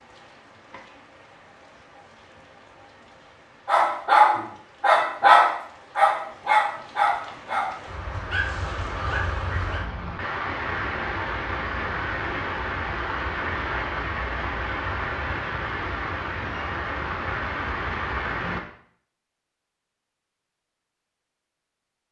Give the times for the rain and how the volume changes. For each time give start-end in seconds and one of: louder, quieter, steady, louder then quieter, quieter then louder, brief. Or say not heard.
0.0-18.6 louder.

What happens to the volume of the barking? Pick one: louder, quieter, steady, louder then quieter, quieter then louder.
quieter.